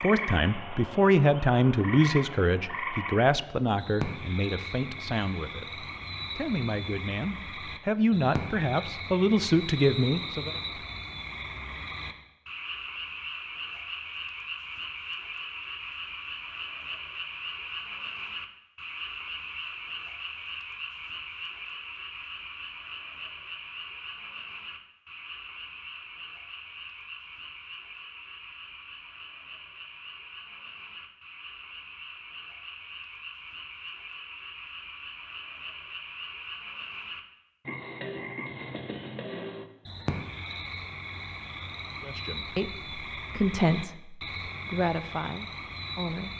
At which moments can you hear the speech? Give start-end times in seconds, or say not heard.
0.0-10.6, 42.0-46.3.